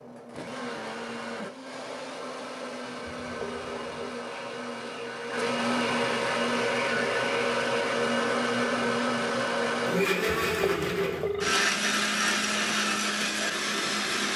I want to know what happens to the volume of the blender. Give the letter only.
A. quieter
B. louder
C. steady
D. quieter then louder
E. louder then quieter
B.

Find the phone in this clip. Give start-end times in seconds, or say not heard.
3.0-4.2, 10.4-11.6.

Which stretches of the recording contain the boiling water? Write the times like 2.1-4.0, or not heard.
not heard.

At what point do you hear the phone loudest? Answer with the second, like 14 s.
11 s.